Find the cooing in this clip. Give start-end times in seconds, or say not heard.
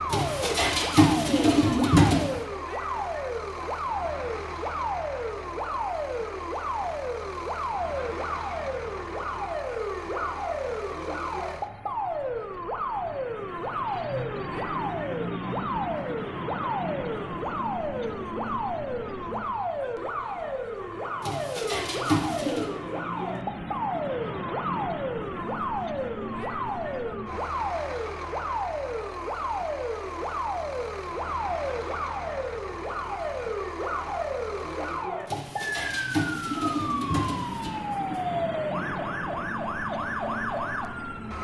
0.1-2.3, 21.2-22.7, 35.2-38.2.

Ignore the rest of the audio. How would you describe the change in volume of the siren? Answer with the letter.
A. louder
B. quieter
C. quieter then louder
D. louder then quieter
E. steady
E.